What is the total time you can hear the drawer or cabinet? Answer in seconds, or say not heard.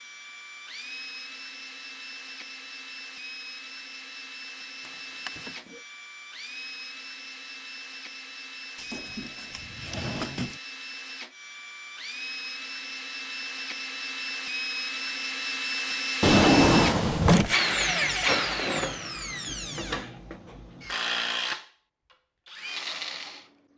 4 s.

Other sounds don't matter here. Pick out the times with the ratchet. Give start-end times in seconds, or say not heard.
not heard.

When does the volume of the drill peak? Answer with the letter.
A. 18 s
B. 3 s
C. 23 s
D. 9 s
A.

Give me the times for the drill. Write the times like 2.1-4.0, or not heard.
0.0-23.7.